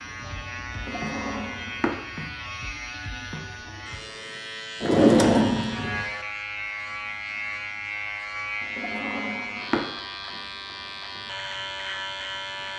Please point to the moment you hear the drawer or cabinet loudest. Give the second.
5 s.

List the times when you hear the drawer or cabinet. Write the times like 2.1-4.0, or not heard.
0.8-1.9, 4.8-6.0, 8.8-9.9.